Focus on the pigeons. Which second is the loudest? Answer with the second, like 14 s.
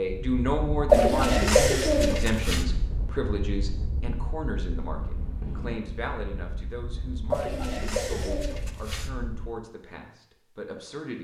1 s.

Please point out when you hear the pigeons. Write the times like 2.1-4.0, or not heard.
0.8-2.6, 7.3-9.1.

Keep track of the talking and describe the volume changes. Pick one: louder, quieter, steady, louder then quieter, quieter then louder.
quieter.